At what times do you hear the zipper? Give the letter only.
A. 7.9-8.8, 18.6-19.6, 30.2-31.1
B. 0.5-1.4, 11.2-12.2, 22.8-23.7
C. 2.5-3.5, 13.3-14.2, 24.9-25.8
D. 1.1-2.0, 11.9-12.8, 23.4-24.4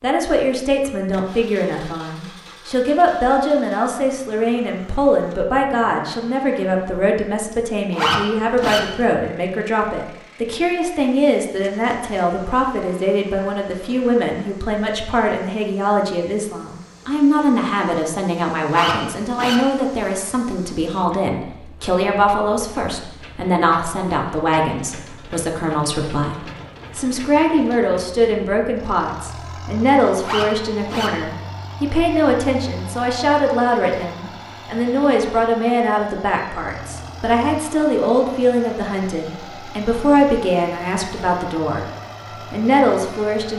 A.